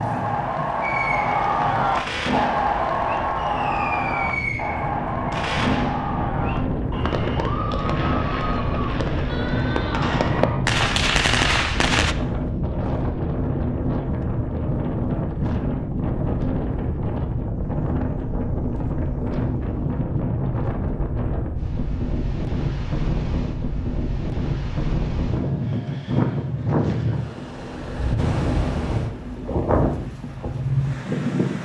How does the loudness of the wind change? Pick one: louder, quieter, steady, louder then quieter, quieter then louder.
louder.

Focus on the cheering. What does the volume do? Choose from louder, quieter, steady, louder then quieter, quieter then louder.
quieter.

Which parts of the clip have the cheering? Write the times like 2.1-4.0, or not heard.
0.0-10.6.